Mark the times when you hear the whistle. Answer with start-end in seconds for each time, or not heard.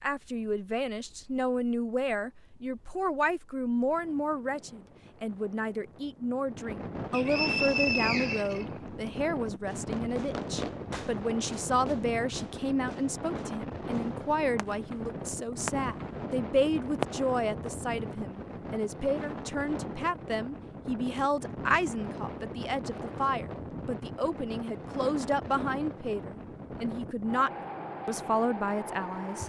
7.1-8.7.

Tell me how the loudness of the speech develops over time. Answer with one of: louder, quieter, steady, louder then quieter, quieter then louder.
steady.